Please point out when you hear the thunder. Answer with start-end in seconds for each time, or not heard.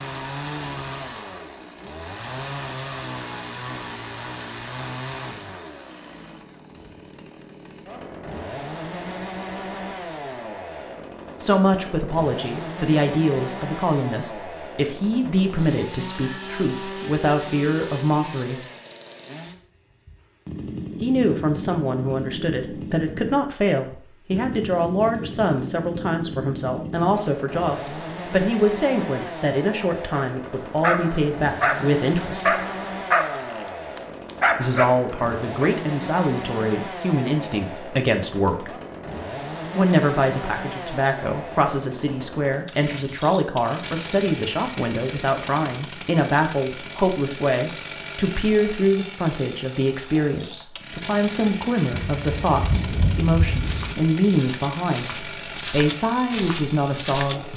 51.9-54.0.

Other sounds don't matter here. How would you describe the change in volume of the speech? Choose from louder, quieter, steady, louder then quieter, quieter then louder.
steady.